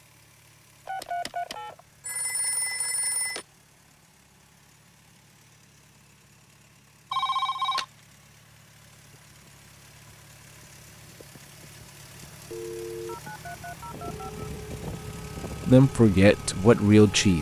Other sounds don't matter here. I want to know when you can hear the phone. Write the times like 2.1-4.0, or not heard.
0.8-3.5, 7.1-7.8, 12.5-14.4.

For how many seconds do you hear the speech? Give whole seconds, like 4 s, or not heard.
2 s.